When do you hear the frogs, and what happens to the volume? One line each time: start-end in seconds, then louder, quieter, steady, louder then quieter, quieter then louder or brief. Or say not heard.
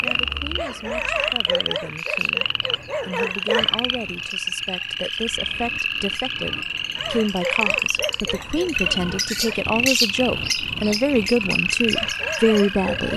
0.0-13.1 steady.